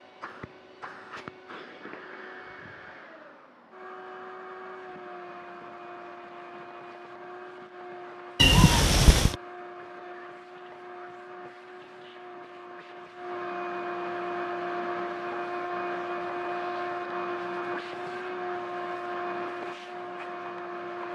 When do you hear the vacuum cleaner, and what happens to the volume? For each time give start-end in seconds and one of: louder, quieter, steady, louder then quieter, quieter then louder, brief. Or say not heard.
0.0-21.1 louder.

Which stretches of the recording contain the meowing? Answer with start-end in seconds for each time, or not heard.
8.3-9.3.